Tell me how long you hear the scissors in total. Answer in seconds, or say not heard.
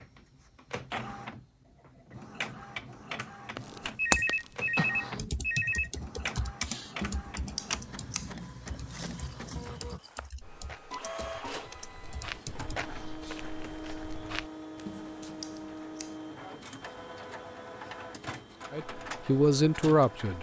3 s.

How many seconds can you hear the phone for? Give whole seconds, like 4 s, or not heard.
2 s.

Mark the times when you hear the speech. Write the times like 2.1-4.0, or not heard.
18.7-20.3.